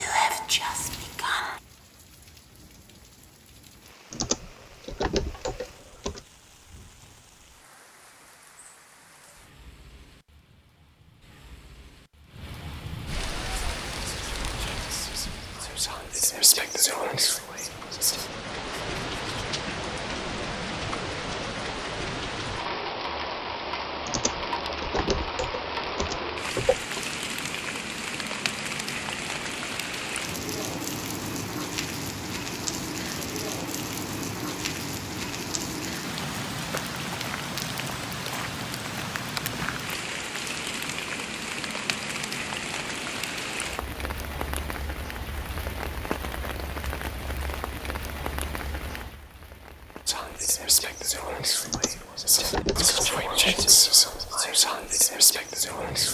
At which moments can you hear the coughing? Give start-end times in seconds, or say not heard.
not heard.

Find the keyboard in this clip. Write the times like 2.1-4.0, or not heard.
4.1-6.2, 24.1-27.0, 51.6-54.0.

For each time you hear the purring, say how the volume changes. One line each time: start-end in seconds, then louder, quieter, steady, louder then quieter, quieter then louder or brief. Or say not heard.
not heard.